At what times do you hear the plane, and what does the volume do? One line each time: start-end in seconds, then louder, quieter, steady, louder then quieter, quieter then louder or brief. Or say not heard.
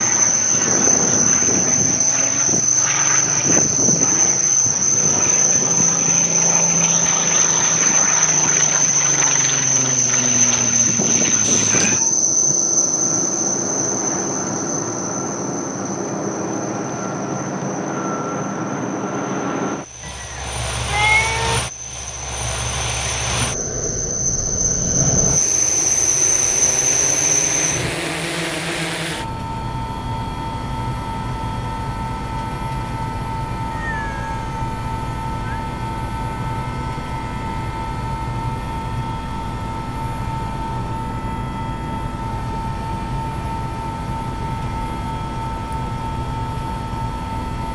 0.0-47.7 steady.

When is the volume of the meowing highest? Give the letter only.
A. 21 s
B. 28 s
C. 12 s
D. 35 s
A.